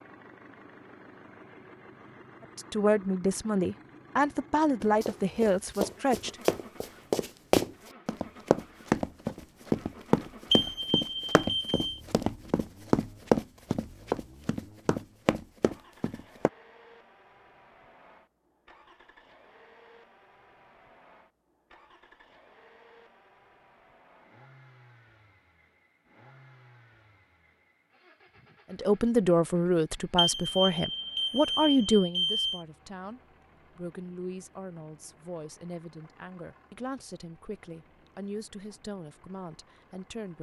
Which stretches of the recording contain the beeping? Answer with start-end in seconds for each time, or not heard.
10.5-12.0, 30.1-32.6.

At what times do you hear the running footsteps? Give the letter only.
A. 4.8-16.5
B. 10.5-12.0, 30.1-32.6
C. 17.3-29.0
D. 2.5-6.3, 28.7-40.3
A.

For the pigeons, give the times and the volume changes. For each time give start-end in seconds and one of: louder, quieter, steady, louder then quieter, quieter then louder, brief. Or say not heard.
not heard.